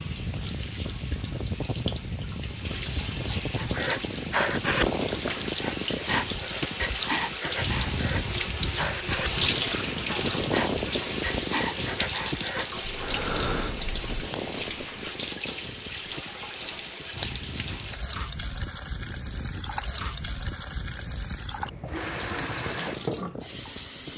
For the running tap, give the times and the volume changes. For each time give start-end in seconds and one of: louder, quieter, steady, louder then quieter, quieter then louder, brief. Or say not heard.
0.0-24.1 louder then quieter.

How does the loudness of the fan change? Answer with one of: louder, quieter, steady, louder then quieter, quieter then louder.
quieter.